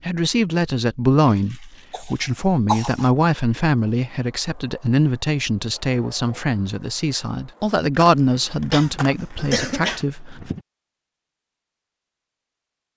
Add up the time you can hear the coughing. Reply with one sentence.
The coughing can be heard for 4 seconds in total.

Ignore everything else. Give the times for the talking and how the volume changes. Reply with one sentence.
The talking can be heard from 0.1 to 10.5 s, at a steady volume.